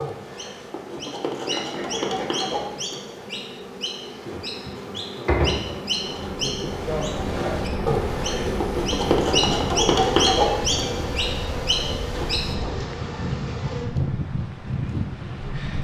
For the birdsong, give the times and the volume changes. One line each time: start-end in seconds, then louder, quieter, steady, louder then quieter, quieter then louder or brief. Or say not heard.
0.0-12.5 quieter then louder.